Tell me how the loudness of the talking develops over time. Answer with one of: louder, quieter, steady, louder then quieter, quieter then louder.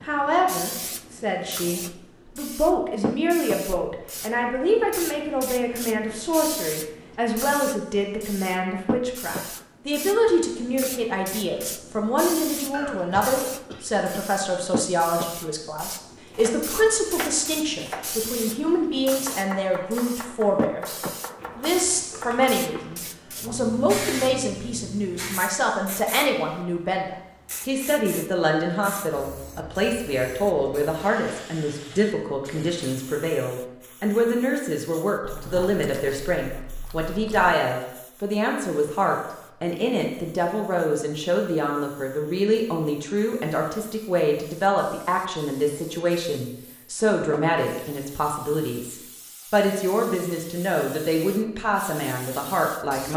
steady.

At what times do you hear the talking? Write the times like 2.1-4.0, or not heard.
0.0-20.9, 21.6-53.1.